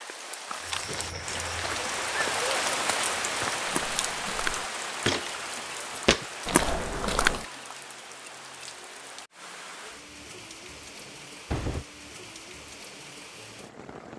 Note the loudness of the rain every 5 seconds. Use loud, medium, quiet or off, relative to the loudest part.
loud, medium, quiet.